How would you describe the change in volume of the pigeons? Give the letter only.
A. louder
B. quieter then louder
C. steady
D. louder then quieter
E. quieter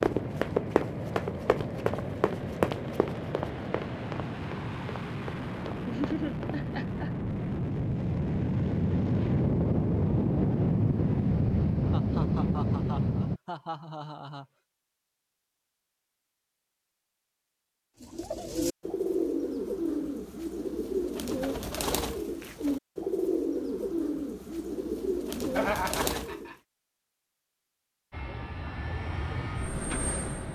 C.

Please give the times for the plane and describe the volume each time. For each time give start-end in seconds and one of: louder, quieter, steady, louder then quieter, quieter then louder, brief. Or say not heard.
0.0-13.4 louder
28.1-30.4 brief.